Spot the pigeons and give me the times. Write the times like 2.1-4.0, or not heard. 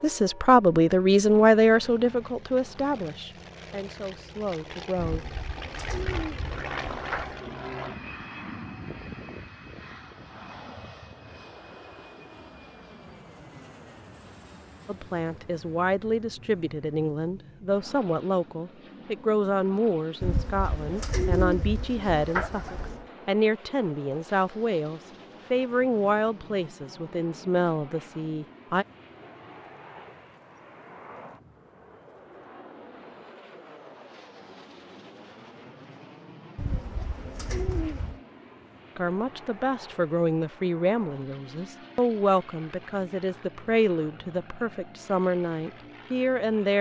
5.0-7.4, 20.2-23.1, 36.5-38.2.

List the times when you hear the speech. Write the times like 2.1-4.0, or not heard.
0.0-5.3, 14.8-28.9, 39.0-46.7.